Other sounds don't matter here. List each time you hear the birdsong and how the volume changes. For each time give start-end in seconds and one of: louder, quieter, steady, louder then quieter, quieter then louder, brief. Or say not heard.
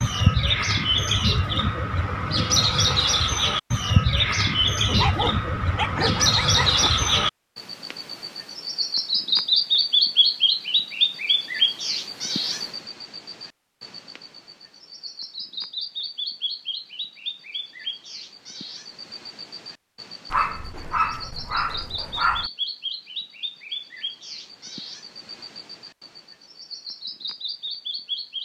0.0-28.4 quieter.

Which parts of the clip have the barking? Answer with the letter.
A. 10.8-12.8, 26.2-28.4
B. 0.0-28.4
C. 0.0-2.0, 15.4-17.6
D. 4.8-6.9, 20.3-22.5
D.